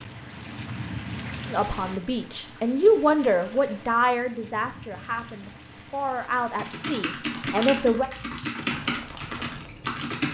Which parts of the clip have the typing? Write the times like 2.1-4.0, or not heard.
6.3-10.2.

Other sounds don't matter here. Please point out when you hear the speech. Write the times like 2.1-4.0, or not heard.
1.5-8.1.